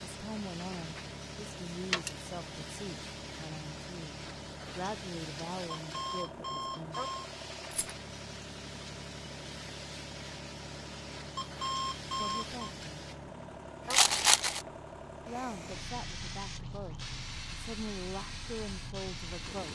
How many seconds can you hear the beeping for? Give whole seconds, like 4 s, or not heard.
3 s.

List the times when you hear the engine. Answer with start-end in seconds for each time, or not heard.
0.0-19.7.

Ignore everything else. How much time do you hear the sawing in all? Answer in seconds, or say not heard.
not heard.